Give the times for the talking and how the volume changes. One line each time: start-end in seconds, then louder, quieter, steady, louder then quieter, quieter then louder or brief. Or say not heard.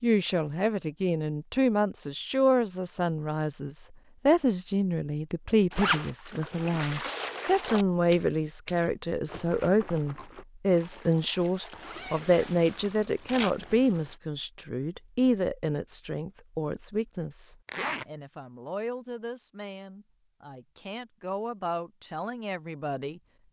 0.0-23.2 quieter.